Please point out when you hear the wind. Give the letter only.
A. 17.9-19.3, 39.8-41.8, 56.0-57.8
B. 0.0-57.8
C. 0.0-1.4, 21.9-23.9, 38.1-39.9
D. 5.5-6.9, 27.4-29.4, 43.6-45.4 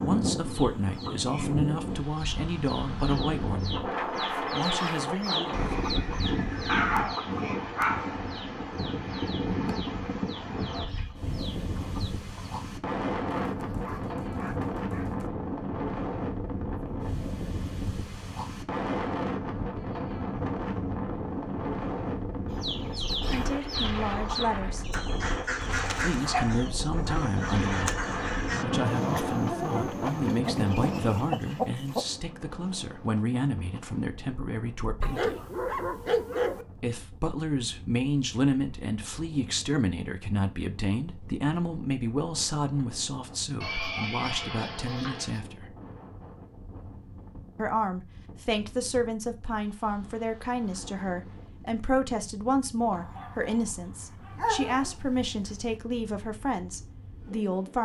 B.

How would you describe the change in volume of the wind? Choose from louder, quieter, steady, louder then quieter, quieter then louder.
quieter.